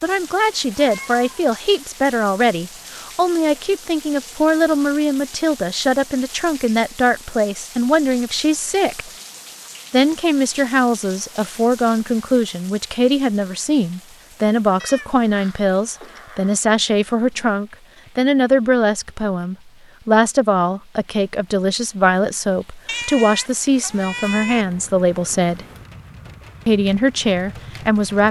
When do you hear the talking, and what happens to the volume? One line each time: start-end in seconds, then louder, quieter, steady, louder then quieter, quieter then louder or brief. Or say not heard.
0.0-9.1 steady
9.9-25.6 steady
26.6-28.2 brief.